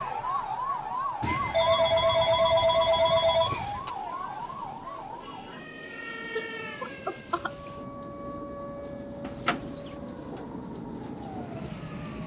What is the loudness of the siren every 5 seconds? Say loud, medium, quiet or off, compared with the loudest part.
loud, medium, quiet.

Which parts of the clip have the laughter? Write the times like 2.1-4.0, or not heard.
6.3-7.7.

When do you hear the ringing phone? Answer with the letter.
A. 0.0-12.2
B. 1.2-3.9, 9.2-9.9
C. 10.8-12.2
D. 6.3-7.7
B.